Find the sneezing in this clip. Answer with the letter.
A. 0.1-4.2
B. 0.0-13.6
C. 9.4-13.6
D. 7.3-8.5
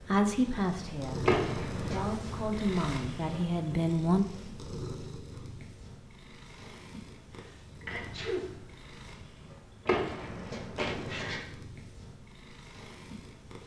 D.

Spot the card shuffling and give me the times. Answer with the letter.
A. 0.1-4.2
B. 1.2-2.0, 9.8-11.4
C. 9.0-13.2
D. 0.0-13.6
B.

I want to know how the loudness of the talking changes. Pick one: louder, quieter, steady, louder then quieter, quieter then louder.
quieter then louder.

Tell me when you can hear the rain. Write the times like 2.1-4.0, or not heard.
not heard.